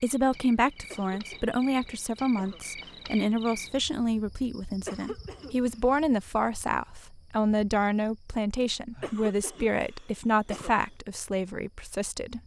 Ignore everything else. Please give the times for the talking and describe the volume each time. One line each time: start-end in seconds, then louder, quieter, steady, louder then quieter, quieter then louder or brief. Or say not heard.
0.0-12.4 steady.